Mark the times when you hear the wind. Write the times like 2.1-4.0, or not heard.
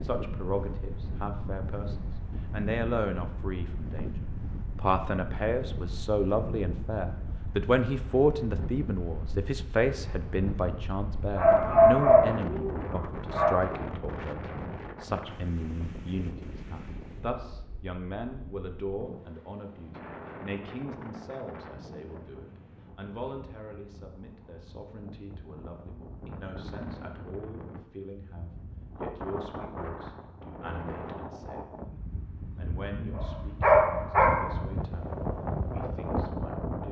0.0-36.8.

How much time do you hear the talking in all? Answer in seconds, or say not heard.
36 s.